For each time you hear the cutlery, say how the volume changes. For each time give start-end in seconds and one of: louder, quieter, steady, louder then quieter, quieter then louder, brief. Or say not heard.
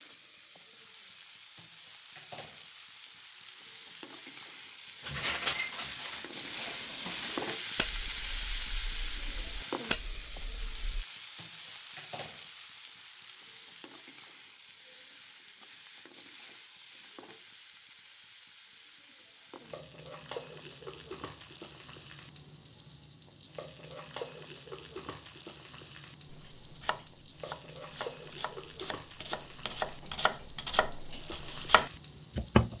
5.0-11.1 quieter then louder.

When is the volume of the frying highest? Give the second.
8 s.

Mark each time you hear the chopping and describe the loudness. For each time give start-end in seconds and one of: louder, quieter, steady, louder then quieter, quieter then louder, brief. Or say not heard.
26.3-32.7 louder.